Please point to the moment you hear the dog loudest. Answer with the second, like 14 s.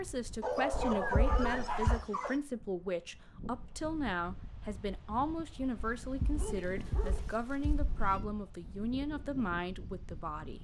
1 s.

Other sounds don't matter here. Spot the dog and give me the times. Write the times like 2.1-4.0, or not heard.
0.4-2.4, 6.3-7.8.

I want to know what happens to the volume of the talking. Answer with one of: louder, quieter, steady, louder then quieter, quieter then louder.
steady.